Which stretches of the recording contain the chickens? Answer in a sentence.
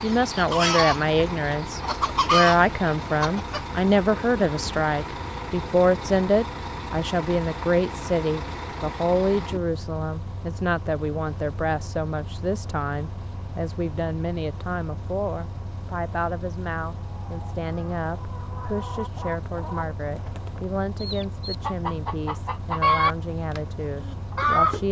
The chickens can be heard from 0.0 to 3.8 s and from 17.2 to 24.8 s.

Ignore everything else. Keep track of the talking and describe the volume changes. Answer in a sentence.
The loudness of the talking goes down.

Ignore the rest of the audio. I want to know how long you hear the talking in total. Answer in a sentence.
The talking can be heard for 25 seconds in total.